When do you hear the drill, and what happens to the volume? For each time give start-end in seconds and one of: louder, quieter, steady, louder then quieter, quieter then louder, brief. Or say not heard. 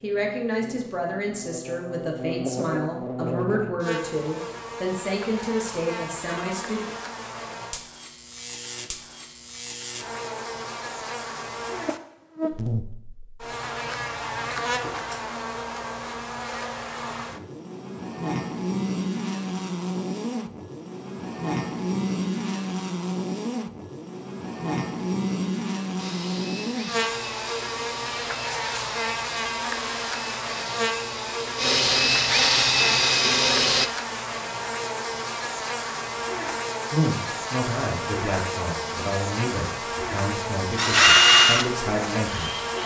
25.9-33.9 louder
40.8-42.8 brief.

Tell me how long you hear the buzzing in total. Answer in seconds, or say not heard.
43 s.